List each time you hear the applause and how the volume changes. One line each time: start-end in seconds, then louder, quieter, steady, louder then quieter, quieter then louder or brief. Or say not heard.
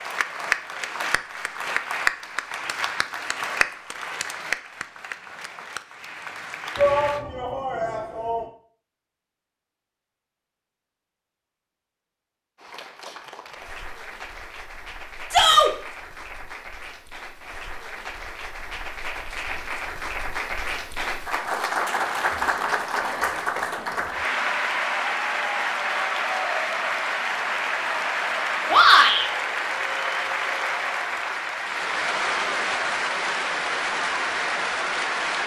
0.0-7.2 quieter
12.6-35.4 louder.